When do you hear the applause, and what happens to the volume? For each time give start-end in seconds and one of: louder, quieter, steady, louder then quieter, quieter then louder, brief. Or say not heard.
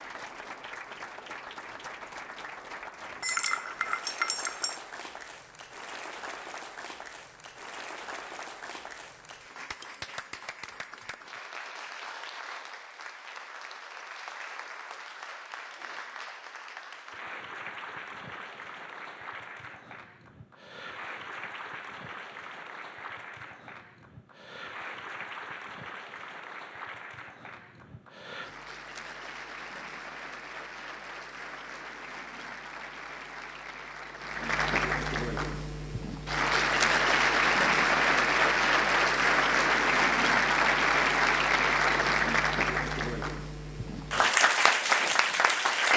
0.0-45.9 louder.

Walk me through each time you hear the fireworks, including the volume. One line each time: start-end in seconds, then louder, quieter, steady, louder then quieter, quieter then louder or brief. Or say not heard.
not heard.